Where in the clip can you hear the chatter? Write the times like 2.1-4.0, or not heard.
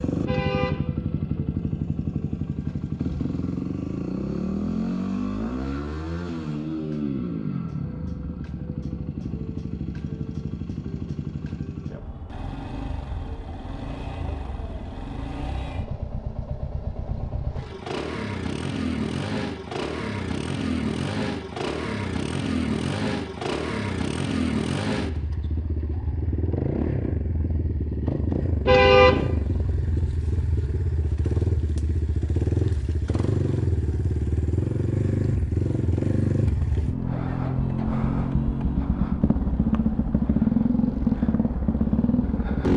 not heard.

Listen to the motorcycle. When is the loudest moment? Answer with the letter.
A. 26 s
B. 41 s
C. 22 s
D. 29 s
B.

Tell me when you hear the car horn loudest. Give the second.
29 s.